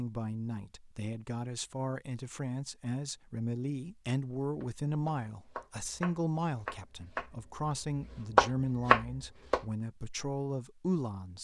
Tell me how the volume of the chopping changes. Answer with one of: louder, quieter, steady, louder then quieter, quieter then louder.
louder.